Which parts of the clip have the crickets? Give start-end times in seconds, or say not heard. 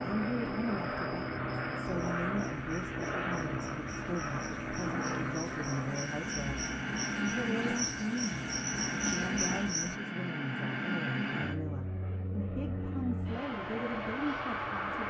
0.1-9.9.